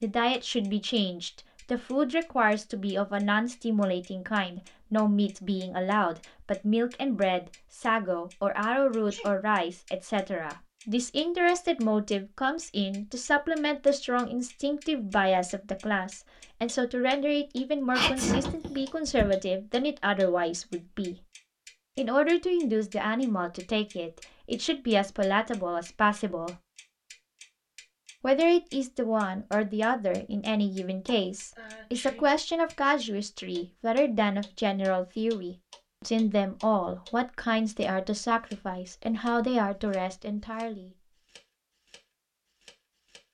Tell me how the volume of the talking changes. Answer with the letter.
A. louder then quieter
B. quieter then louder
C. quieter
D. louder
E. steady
E.